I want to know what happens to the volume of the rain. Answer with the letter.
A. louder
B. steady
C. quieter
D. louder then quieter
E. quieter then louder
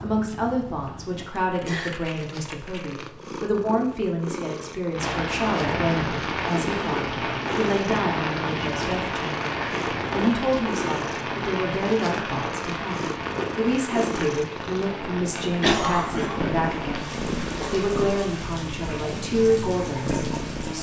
C.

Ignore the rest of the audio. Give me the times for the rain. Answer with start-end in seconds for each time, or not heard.
4.9-20.7.